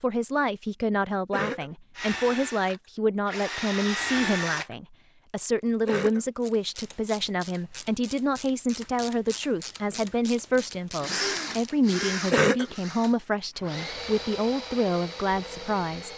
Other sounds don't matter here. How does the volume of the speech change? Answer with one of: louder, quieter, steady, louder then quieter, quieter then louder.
steady.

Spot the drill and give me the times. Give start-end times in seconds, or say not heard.
1.9-4.8, 9.9-16.1.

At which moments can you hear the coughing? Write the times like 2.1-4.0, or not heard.
1.3-1.8, 5.8-6.3, 12.3-12.8.